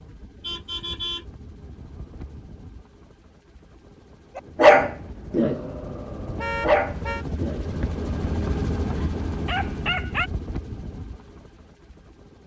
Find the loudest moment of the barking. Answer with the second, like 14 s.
5 s.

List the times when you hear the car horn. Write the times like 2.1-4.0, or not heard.
0.4-2.4, 6.3-7.2.